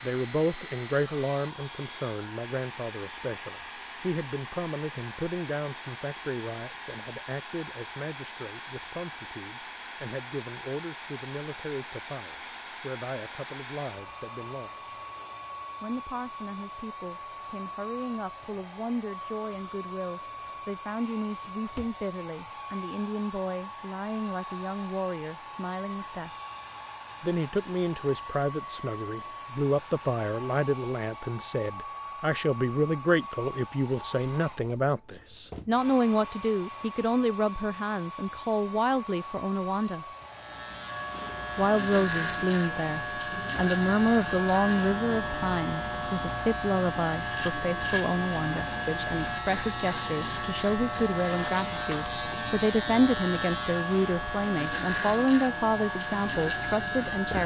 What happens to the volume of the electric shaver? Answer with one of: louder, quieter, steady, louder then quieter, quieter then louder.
steady.